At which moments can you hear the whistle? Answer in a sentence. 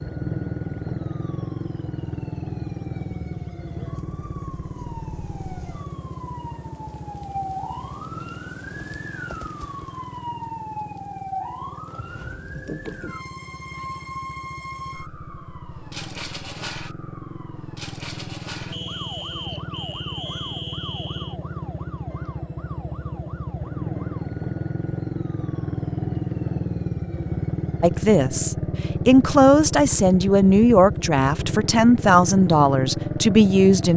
The whistle can be heard from 18.7 to 21.4 s.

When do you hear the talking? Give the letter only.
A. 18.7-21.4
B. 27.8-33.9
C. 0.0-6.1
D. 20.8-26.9
B.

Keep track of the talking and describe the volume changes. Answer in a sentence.
The loudness of the talking stays about the same.